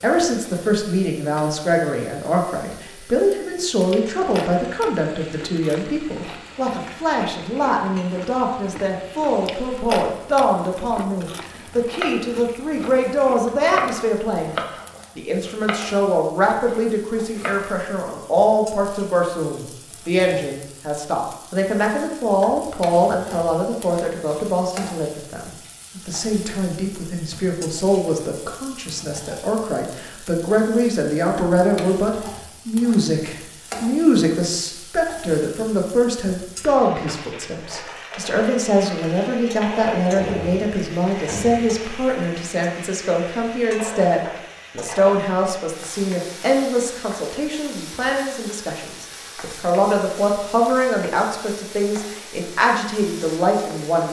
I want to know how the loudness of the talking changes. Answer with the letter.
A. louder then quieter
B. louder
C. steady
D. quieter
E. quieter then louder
C.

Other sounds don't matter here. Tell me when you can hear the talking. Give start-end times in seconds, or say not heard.
0.0-14.6, 15.2-54.0.